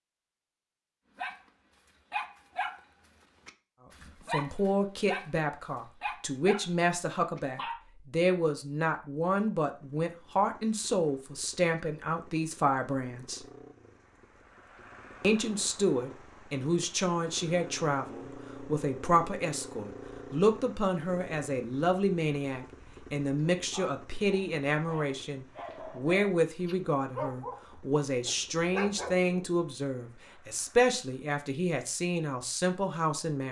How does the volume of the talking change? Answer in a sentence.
The volume of the talking stays about the same.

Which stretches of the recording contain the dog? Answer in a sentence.
You can hear the dog from 1.1 to 2.8 s, from 3.5 to 6.7 s, from 7.3 to 7.8 s and from 23.6 to 29.1 s.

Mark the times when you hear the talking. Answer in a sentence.
You can hear the talking from 4.3 to 13.4 s and from 15.2 to 33.4 s.